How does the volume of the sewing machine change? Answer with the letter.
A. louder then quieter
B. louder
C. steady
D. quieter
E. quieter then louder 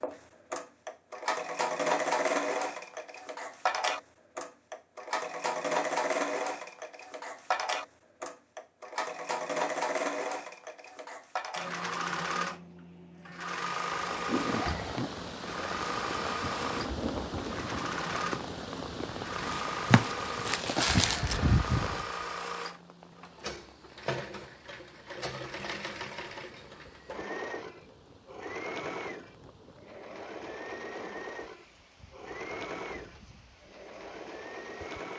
D.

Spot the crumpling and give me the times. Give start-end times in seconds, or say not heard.
19.4-21.4.